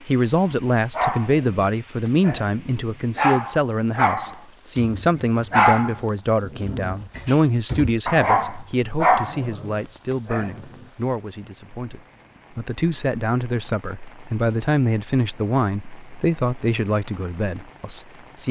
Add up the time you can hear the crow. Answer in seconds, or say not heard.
not heard.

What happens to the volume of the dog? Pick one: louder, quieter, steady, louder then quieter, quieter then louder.
louder.